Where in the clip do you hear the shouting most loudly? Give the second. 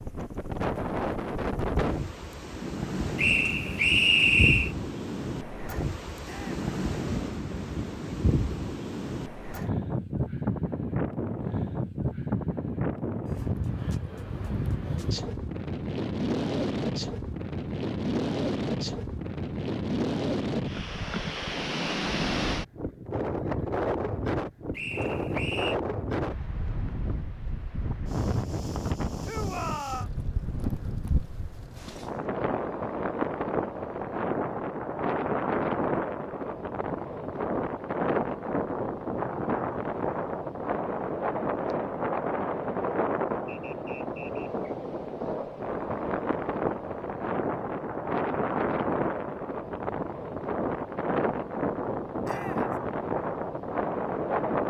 30 s.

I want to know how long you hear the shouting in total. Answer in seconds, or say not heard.
2 s.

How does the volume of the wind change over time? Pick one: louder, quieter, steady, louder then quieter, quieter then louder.
steady.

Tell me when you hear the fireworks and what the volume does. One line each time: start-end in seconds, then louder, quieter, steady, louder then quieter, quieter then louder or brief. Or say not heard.
not heard.